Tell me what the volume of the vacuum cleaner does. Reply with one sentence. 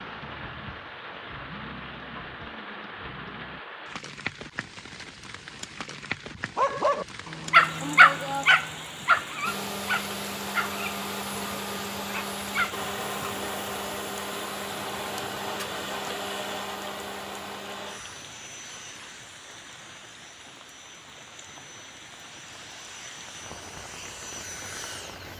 The loudness of the vacuum cleaner goes down, then up.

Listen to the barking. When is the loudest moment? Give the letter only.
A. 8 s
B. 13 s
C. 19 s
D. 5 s
A.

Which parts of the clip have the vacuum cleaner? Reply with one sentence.
You can hear the vacuum cleaner from 9.4 to 25.3 s.